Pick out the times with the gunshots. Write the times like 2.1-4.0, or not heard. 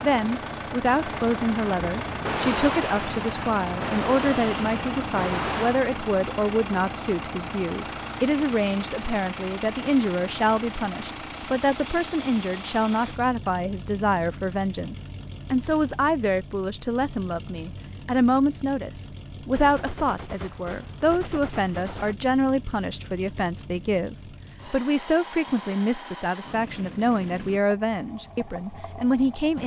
2.0-5.8, 19.5-22.1.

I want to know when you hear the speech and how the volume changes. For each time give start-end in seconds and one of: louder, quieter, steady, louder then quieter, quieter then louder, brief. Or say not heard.
0.0-29.6 steady.